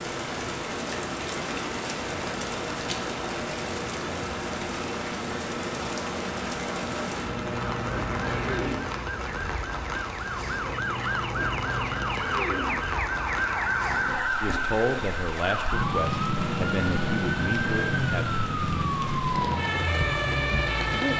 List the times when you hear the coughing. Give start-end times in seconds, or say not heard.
8.3-8.9, 12.1-12.8.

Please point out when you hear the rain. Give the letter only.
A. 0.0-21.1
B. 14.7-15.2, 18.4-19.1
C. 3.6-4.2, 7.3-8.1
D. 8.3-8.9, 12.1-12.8
A.